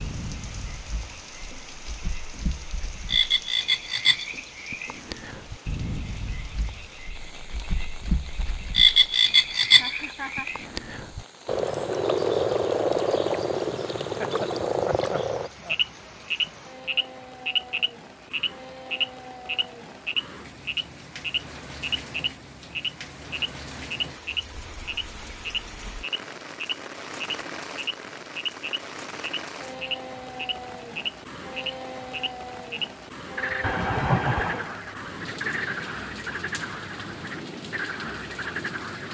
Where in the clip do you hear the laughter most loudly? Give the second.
34 s.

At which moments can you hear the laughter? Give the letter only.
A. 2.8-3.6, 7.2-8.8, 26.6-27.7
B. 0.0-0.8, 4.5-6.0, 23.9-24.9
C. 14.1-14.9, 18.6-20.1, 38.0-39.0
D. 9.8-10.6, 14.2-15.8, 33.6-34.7
D.